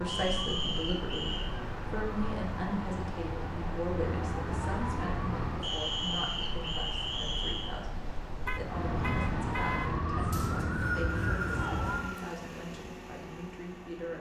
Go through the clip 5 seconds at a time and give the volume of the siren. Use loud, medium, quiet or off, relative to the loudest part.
medium, loud, loud.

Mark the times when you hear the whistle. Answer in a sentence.
The whistle can be heard from 0.1 to 1.4 s, from 5.6 to 7.7 s and from 10.3 to 12.2 s.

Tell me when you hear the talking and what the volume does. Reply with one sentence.
The talking can be heard from 0.0 to 14.1 s, getting quieter.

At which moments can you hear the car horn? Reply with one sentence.
The car horn can be heard from 8.4 to 9.9 s.